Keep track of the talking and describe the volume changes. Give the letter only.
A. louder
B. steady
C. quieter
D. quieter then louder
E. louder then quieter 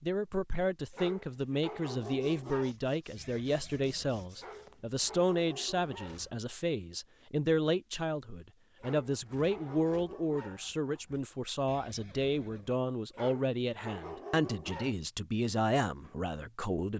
B.